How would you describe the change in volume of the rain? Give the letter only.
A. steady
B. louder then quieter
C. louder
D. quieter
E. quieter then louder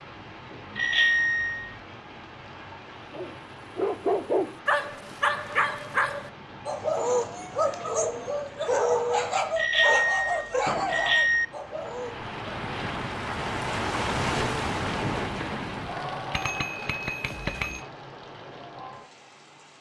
B.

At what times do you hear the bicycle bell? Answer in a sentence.
The bicycle bell can be heard from 0.8 to 1.8 s, from 9.6 to 11.4 s and from 16.3 to 17.9 s.